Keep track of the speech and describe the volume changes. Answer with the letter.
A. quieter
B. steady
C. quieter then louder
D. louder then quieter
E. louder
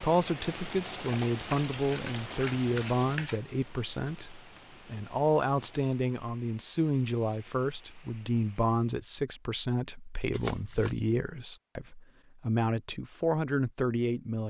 B.